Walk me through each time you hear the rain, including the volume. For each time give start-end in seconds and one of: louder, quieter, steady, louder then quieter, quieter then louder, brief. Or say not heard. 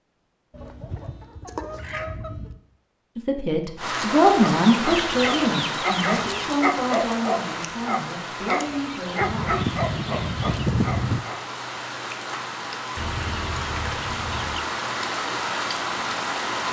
3.8-16.6 quieter then louder.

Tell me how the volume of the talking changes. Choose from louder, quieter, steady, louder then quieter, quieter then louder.
quieter.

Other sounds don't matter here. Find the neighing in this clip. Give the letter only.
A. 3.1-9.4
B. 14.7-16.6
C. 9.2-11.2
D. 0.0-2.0
C.